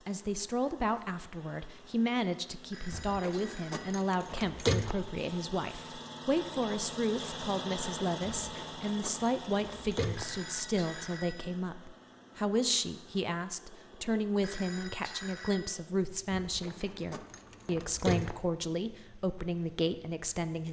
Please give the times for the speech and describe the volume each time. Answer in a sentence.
The speech can be heard from 0.1 to 20.6 s, at a steady volume.